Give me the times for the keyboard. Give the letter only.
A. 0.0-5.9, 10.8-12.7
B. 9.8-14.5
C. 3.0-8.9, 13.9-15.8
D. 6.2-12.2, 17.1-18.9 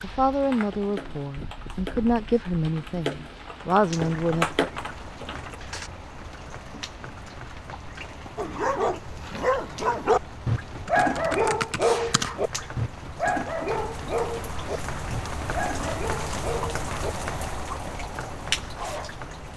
A.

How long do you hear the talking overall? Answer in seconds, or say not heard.
5 s.